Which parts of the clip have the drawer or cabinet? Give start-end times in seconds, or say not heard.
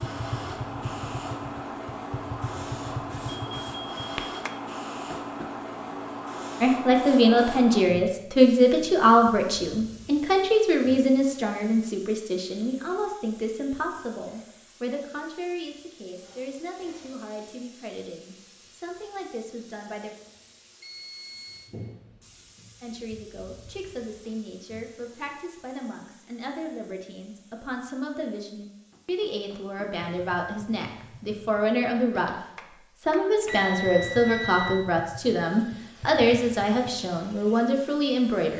not heard.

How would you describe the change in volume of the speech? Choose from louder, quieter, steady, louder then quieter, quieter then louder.
quieter then louder.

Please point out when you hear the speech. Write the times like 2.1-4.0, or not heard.
6.6-20.1, 22.8-32.4, 33.0-38.5.